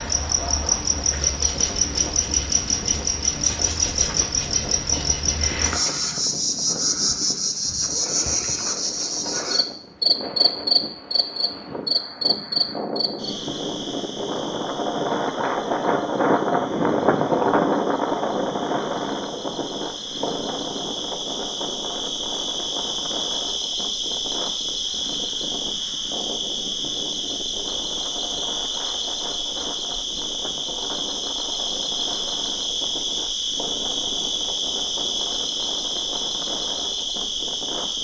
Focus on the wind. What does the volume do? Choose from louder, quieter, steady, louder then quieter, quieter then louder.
louder then quieter.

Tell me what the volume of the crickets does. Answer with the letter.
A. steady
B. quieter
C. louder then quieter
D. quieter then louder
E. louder
D.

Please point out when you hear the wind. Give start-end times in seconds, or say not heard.
0.0-38.0.